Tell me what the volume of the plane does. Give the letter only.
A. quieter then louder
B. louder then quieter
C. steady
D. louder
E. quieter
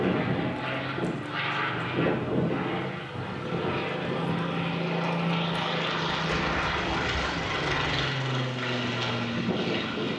C.